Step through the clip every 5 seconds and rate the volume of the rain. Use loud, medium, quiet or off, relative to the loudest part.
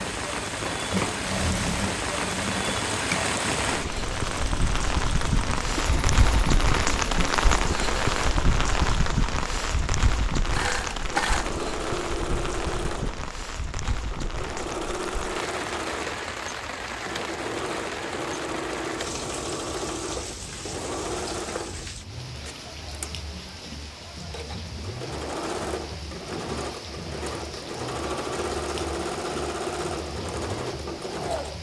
loud, loud, medium, medium, quiet, quiet, quiet.